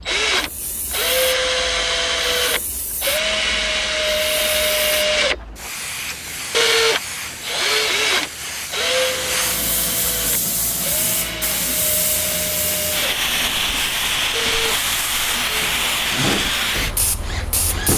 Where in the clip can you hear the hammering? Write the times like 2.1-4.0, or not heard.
not heard.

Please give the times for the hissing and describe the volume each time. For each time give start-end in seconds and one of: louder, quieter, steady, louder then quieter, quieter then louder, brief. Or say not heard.
0.0-17.9 louder.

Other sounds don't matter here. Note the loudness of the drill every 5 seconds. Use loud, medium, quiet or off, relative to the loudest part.
loud, loud, medium, medium.